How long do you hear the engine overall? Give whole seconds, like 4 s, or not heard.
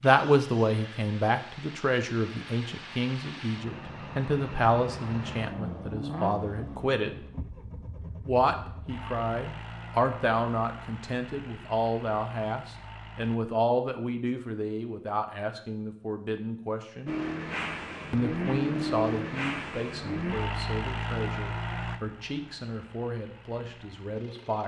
21 s.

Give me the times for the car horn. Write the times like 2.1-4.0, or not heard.
not heard.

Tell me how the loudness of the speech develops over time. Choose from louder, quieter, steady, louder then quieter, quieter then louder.
quieter.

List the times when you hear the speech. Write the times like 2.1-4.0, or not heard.
0.0-7.2, 8.2-17.1, 18.1-24.6.